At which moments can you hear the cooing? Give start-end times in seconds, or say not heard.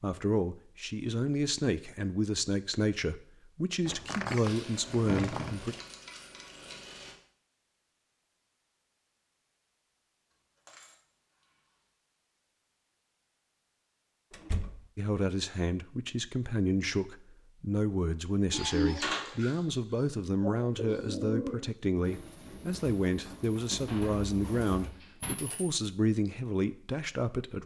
18.5-19.6, 20.4-24.9.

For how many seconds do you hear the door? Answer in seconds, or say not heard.
4 s.